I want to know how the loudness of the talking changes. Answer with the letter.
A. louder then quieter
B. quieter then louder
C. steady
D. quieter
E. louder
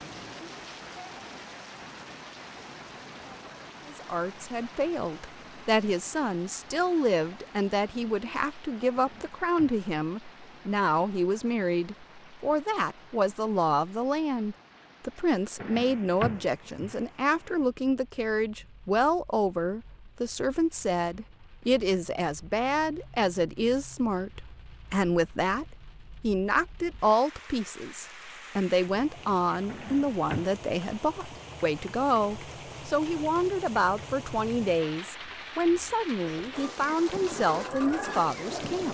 C.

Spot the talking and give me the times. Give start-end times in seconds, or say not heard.
3.9-38.8.